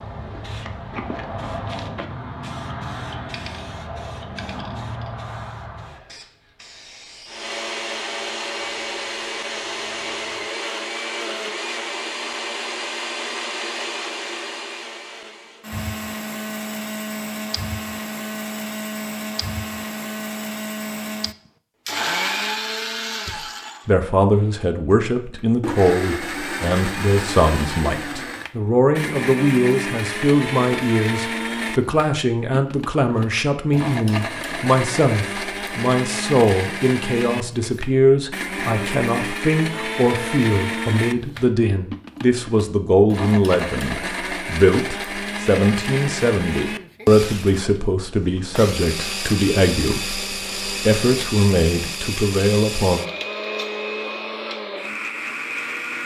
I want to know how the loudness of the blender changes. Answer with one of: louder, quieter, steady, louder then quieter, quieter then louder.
steady.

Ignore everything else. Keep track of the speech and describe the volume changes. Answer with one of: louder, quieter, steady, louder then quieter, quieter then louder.
steady.